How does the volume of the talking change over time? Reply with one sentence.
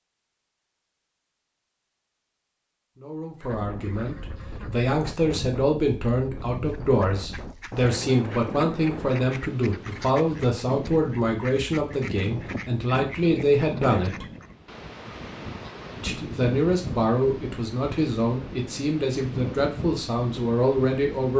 The volume of the talking stays about the same.